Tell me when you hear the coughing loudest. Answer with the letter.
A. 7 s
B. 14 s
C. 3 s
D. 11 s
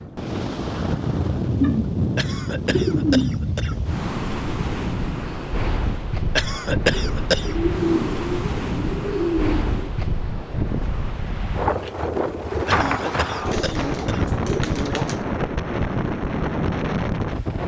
A.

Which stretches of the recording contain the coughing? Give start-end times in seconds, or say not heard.
2.1-3.8, 6.3-7.5, 12.7-14.2.